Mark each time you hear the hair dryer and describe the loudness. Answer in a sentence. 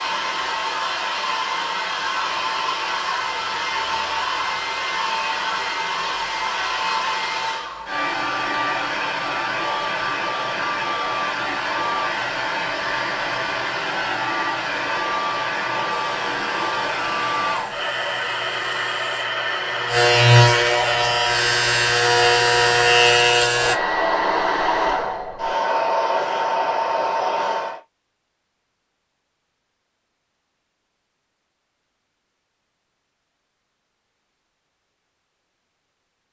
You can hear the hair dryer from 0.0 to 27.8 s, at a steady volume.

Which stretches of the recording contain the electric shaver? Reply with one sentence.
The electric shaver can be heard from 16.1 to 23.8 s.